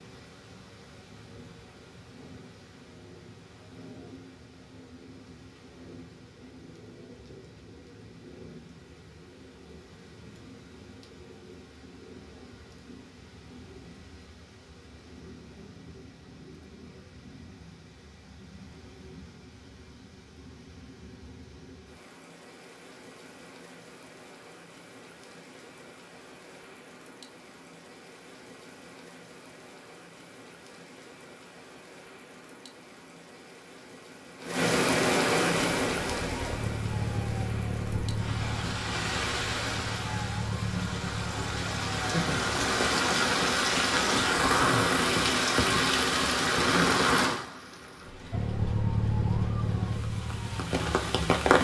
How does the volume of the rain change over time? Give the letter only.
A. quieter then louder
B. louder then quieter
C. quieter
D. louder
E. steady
D.